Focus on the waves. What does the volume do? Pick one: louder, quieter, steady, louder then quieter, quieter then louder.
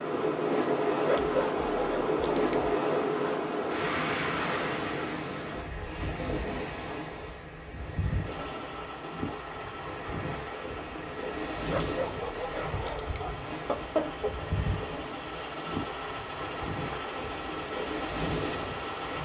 quieter.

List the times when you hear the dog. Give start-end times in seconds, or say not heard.
1.1-2.5, 11.7-13.4.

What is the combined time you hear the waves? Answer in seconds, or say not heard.
19 s.